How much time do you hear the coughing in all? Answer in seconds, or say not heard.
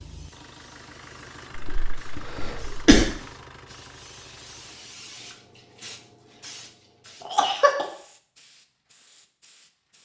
2 s.